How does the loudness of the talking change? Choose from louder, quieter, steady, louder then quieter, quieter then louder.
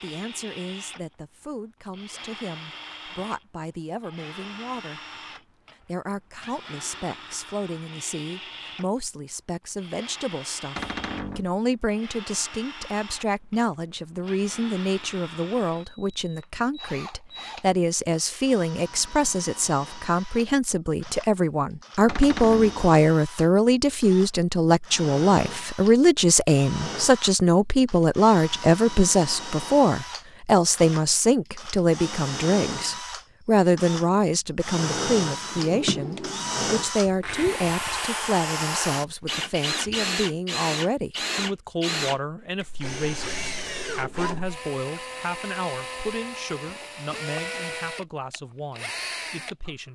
louder then quieter.